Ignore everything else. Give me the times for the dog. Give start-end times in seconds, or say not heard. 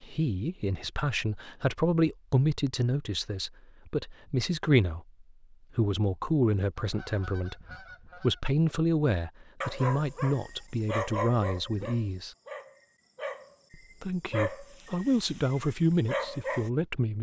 9.6-16.7.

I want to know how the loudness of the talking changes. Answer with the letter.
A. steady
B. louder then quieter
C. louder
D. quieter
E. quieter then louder
A.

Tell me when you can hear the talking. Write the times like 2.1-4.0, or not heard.
0.0-12.3, 13.7-17.1.